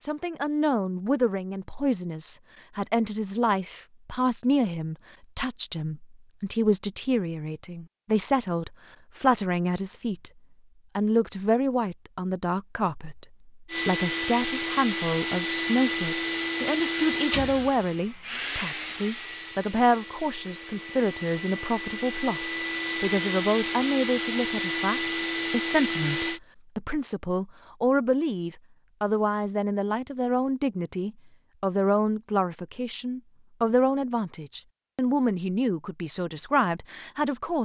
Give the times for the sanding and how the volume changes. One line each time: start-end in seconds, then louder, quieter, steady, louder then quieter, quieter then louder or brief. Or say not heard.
not heard.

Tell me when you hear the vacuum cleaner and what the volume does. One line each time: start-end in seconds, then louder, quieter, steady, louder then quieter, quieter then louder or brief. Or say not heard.
13.7-26.4 quieter then louder.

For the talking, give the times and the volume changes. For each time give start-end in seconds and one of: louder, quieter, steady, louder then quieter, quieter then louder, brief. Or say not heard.
0.0-10.3 steady
10.9-37.6 steady.